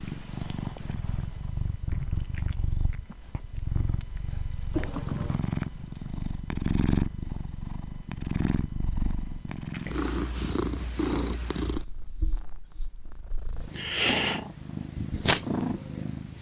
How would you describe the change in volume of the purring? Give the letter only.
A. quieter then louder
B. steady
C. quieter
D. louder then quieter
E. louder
E.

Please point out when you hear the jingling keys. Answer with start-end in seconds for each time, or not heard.
4.7-5.4.